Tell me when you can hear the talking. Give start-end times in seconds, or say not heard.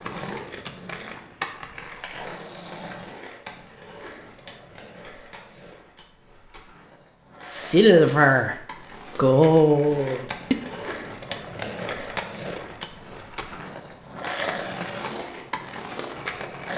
7.5-10.6.